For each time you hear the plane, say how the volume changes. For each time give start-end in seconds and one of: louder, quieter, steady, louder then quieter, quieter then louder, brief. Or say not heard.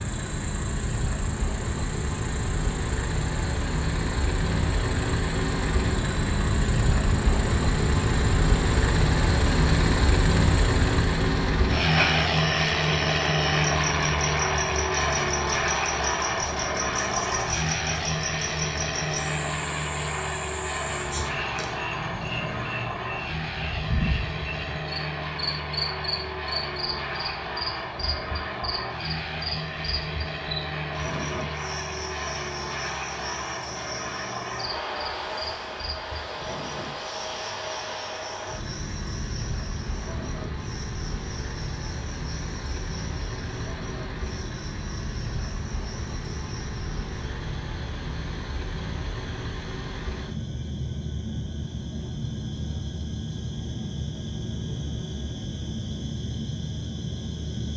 0.0-57.7 quieter.